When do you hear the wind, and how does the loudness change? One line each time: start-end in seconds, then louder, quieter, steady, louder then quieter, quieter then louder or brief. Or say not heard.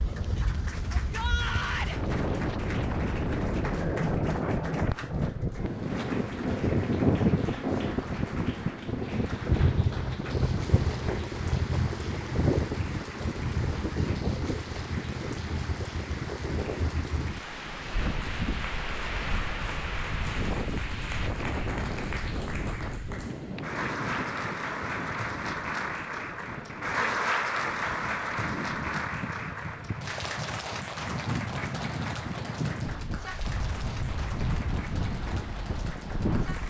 0.0-36.6 quieter.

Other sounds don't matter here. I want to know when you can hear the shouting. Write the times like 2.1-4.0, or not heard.
0.9-1.9.